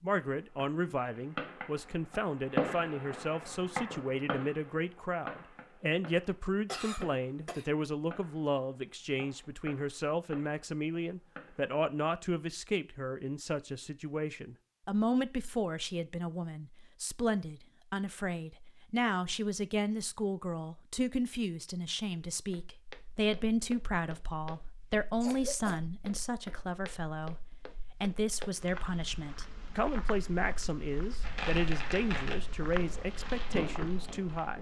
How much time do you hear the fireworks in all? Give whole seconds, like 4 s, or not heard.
15 s.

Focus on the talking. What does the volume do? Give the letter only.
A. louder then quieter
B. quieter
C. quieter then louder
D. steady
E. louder
D.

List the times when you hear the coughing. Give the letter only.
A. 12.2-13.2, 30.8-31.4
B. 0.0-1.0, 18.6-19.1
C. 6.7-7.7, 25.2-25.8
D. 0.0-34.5
C.